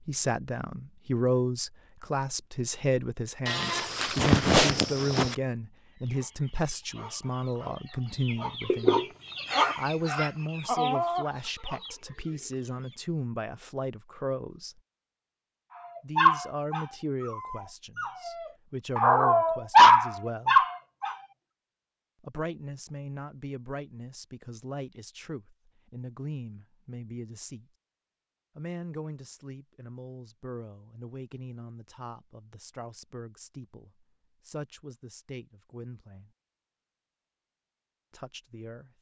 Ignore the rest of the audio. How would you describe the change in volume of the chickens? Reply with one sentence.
The volume of the chickens goes up, then down.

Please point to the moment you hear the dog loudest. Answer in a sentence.
The loudest moment of the dog is at 20 seconds.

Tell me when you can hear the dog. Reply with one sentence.
The dog can be heard from 16.1 to 21.1 s.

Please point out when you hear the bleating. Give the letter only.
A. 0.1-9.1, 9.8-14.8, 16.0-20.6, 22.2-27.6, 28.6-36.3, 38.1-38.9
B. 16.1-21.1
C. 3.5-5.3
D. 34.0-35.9
C.